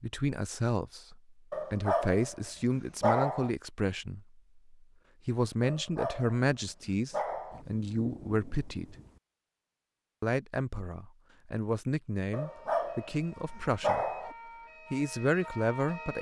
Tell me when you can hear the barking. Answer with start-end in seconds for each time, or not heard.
1.5-3.5, 5.6-7.7, 12.3-14.3.